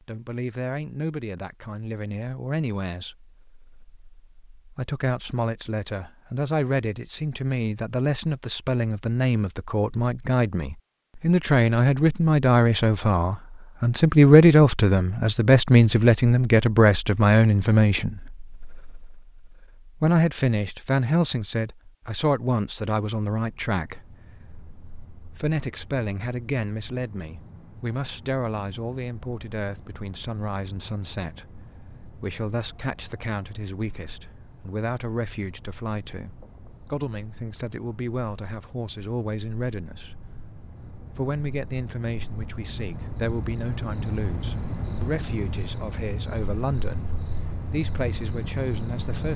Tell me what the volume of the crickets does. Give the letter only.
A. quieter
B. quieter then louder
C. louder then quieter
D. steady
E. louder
E.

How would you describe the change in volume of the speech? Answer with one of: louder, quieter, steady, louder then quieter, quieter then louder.
louder then quieter.